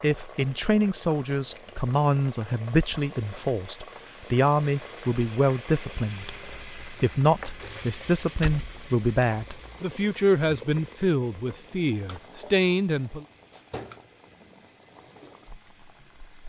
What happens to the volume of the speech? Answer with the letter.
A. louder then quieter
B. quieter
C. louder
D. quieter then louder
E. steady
E.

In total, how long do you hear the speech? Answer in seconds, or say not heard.
13 s.